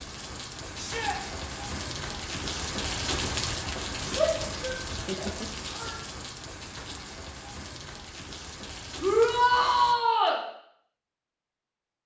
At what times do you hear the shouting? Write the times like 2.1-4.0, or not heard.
0.8-1.2, 4.2-6.0, 9.0-10.4.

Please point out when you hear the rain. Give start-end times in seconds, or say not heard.
0.0-9.9.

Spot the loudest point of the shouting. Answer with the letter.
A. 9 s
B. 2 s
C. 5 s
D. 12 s
A.